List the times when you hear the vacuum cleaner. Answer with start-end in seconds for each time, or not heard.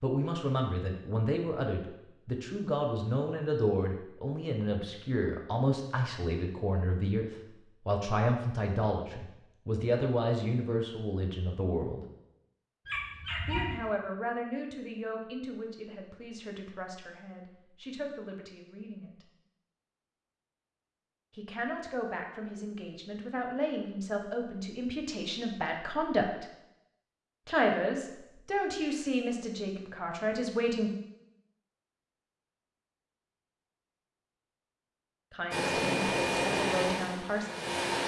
35.5-38.0.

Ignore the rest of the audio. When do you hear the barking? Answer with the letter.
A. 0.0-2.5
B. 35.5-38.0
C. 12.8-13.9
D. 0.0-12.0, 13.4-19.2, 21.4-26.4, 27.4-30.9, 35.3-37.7
C.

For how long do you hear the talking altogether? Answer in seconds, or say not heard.
29 s.